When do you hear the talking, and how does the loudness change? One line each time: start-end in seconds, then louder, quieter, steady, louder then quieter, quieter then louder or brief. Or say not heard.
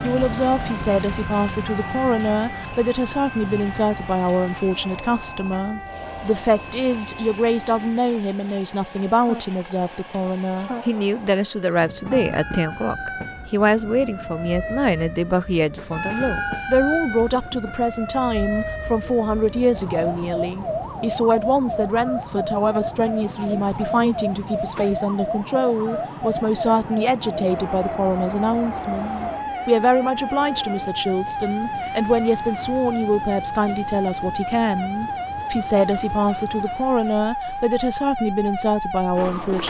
0.0-39.6 steady.